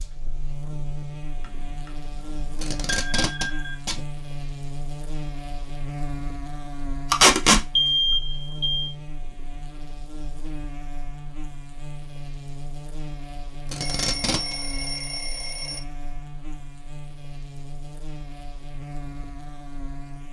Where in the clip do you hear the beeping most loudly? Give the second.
8 s.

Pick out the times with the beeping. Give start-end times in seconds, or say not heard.
1.4-3.8, 7.8-8.9, 13.8-15.8.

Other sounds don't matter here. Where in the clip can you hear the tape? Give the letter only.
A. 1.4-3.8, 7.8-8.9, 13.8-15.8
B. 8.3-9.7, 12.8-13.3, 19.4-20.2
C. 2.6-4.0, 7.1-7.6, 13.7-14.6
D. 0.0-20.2
C.